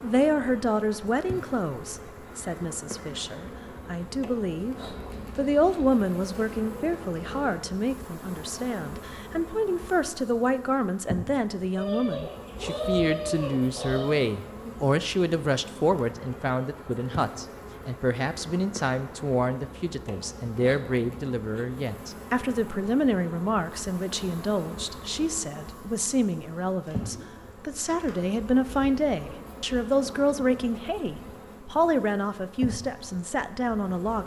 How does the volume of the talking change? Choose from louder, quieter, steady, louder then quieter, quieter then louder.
steady.